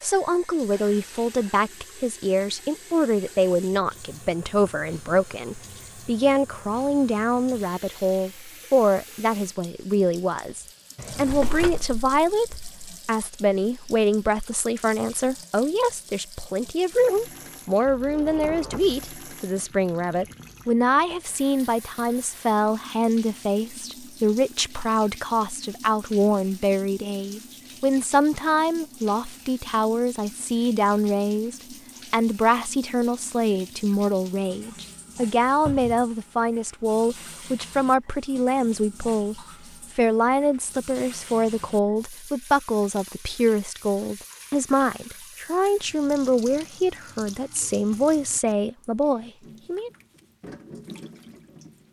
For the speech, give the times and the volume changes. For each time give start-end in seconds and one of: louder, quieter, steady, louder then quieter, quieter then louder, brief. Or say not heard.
0.0-49.9 steady.